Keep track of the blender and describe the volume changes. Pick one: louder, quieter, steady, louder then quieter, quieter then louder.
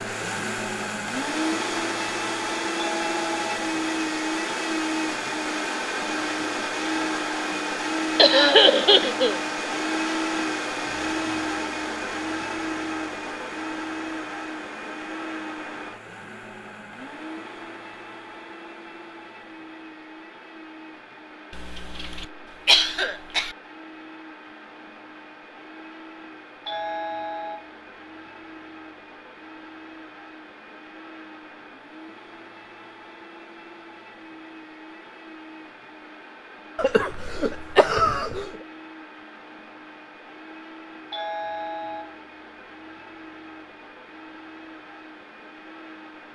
quieter.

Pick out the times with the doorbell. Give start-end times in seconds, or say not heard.
2.8-3.6, 26.6-27.7, 41.1-42.1.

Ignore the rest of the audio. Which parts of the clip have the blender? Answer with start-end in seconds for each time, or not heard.
0.0-46.3.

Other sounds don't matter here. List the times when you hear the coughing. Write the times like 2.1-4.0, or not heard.
8.2-9.4, 21.5-23.6, 36.8-38.5.